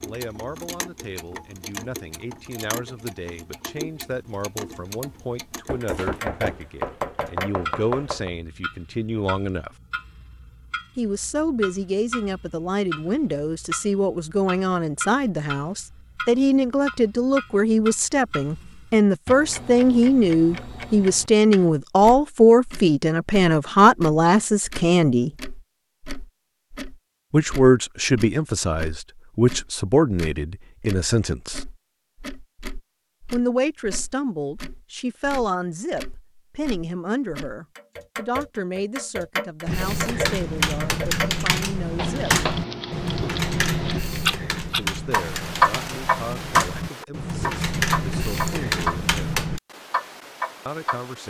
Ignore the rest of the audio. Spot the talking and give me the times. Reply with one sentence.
The talking can be heard from 0.0 to 9.7 s, from 10.9 to 25.3 s, from 27.3 to 31.6 s, from 33.3 to 42.5 s, from 44.8 to 49.3 s and from 50.6 to 51.2 s.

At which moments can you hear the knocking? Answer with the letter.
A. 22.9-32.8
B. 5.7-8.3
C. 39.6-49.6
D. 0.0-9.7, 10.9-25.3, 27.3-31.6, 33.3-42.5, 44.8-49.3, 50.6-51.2
B.